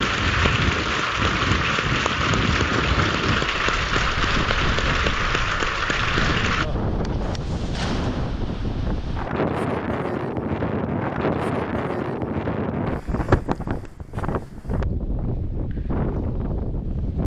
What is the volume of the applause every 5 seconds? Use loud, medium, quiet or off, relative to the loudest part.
loud, loud, off, off.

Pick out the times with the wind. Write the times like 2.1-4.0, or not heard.
0.0-17.2.